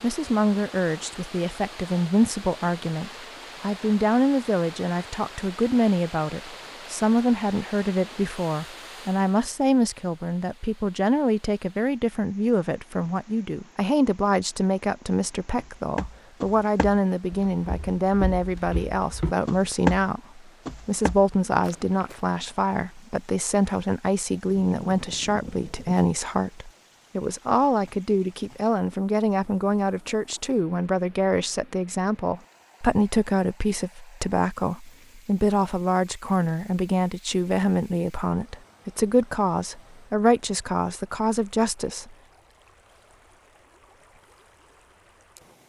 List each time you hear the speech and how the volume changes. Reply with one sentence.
The speech can be heard from 0.0 to 42.1 s, at a steady volume.